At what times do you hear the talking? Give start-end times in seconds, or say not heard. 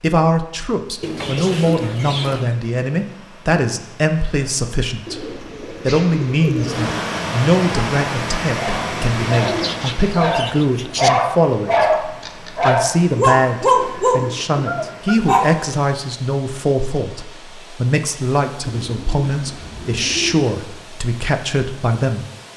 0.0-22.2.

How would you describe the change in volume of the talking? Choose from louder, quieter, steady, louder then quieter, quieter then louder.
steady.